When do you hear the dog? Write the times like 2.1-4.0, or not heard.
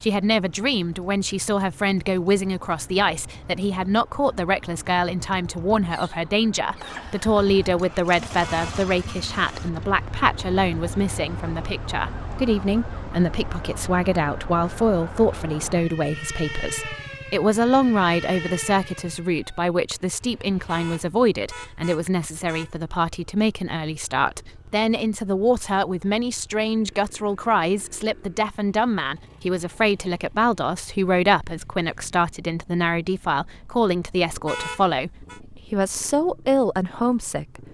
not heard.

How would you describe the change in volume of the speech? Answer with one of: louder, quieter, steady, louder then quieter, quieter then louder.
steady.